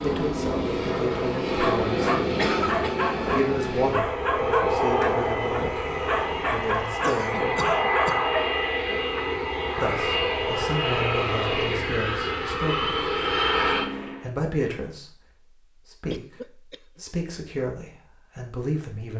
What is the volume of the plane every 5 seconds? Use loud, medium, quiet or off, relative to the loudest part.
loud, loud, loud, off.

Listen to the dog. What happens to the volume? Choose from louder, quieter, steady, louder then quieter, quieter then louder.
steady.